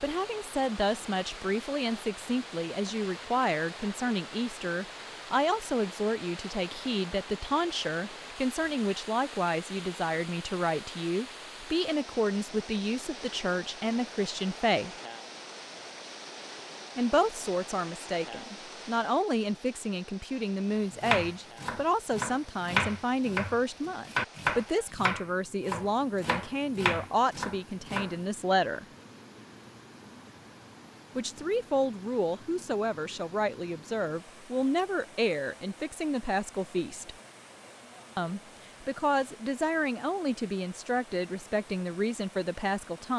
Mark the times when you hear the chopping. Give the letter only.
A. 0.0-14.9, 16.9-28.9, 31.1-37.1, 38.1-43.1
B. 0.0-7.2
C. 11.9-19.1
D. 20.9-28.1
D.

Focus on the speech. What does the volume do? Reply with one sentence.
The loudness of the speech stays about the same.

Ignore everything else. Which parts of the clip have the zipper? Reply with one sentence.
The zipper can't be heard in this clip.